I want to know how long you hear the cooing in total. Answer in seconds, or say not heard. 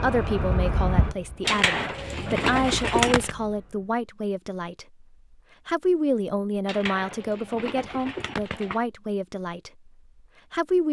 4 s.